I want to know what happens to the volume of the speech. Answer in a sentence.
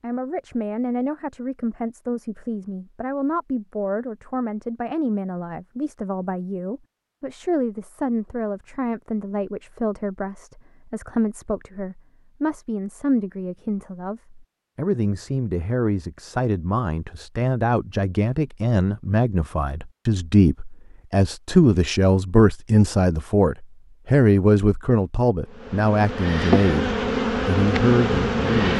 The volume of the speech goes up.